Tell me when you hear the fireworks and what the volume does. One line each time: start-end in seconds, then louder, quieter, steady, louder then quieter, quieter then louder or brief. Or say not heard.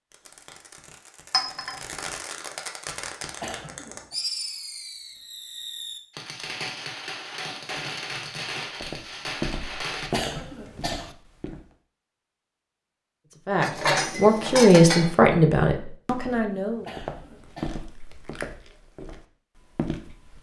0.1-10.1 louder.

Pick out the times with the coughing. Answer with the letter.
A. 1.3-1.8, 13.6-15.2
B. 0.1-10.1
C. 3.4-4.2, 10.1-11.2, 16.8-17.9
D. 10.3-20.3
C.